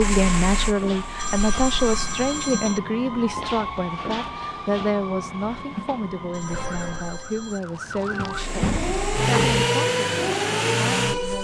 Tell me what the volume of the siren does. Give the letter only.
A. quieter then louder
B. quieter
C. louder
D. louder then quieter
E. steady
C.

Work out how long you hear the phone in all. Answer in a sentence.
You can hear the phone for 3 seconds altogether.